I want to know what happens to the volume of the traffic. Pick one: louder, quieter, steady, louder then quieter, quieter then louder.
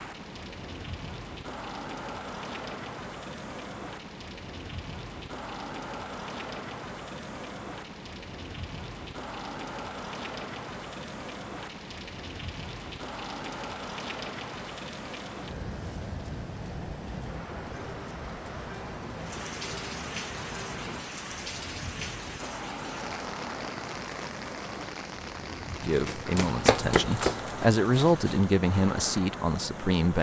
steady.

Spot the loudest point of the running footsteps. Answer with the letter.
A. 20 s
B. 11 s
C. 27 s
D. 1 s
C.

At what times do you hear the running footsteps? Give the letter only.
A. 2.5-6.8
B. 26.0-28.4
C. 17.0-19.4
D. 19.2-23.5
B.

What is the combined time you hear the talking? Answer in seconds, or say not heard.
4 s.